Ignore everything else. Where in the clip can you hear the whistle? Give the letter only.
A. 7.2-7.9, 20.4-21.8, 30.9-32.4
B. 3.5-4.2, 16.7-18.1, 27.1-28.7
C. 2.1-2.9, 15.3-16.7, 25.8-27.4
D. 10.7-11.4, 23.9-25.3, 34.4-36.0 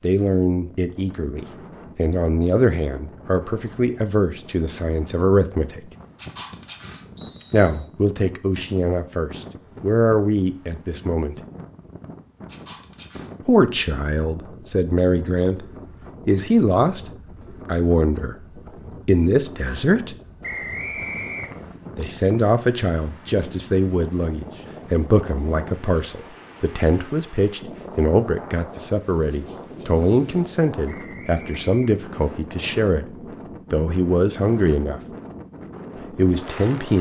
A.